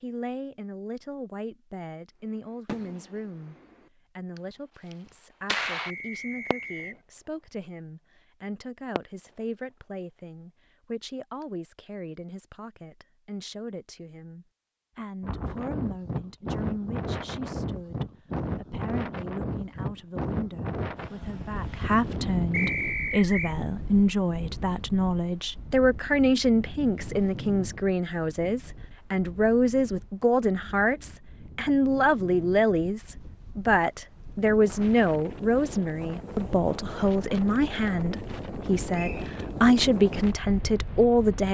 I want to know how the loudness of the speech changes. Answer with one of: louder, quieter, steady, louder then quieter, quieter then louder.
louder.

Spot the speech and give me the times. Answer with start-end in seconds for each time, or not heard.
0.0-3.5, 4.2-41.4.